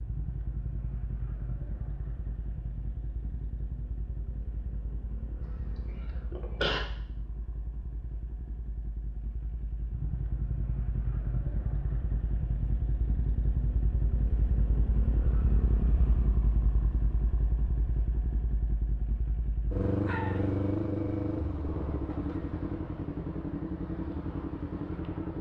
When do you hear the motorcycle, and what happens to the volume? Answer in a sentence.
You can hear the motorcycle from 0.0 to 25.3 s, getting louder.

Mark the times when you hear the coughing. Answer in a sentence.
You can hear the coughing from 5.4 to 6.8 s.